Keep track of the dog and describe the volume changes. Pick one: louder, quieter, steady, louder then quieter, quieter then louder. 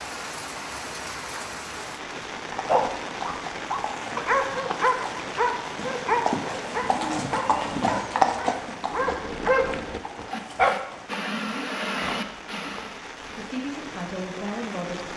quieter.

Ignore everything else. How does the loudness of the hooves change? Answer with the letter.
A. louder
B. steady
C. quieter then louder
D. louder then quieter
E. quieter
D.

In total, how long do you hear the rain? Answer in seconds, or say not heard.
15 s.